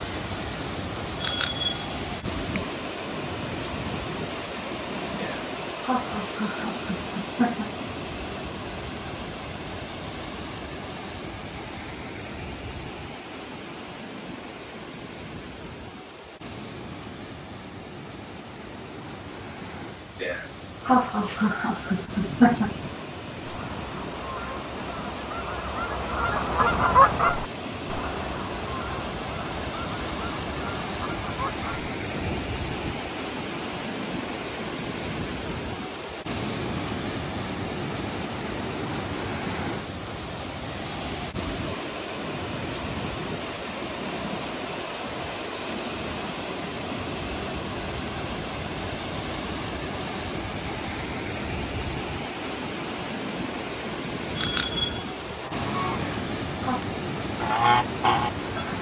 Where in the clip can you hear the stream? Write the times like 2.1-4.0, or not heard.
0.0-58.7.